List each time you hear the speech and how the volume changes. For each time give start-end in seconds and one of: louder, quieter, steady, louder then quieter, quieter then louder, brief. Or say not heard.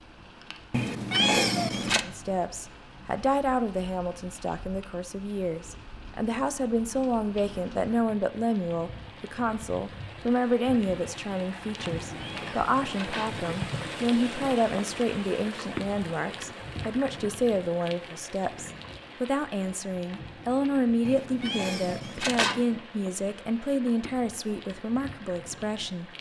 2.0-26.1 steady.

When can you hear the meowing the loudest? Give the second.
1 s.